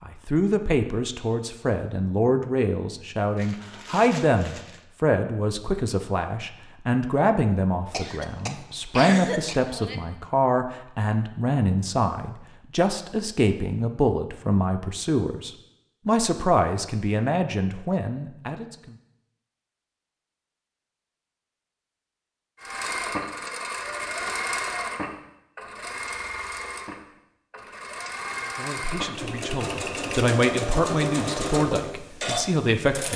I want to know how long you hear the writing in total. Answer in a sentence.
The writing can't be heard in this clip.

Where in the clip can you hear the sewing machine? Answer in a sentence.
The sewing machine can be heard from 22.6 to 33.1 s.